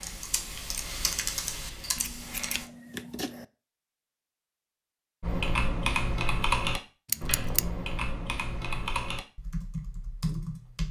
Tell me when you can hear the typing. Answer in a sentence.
The typing can be heard from 0.0 to 2.7 s and from 5.2 to 10.8 s.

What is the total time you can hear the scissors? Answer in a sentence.
The scissors can be heard for 2 seconds in total.